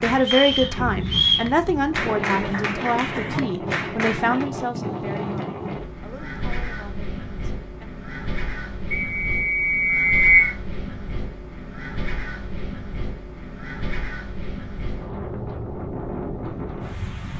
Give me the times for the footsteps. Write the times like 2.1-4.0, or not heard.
not heard.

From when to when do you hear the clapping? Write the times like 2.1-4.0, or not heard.
0.0-4.5.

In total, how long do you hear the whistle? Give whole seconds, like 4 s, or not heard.
3 s.